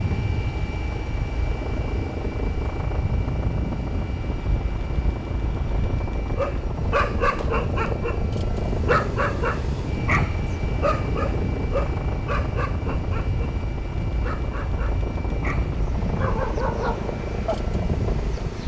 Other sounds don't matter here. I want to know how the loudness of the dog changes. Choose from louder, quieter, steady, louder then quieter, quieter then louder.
quieter then louder.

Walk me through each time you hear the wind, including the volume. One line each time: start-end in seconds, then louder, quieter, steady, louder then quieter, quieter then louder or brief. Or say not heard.
0.0-18.6 steady.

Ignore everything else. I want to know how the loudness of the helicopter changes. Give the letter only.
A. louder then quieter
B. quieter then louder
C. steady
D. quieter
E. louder
C.